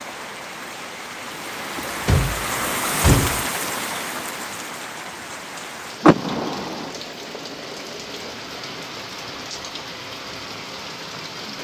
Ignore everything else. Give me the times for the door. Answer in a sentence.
The door can be heard from 1.8 to 3.5 s and from 6.0 to 6.9 s.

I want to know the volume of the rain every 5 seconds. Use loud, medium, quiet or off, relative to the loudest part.
loud, medium, medium.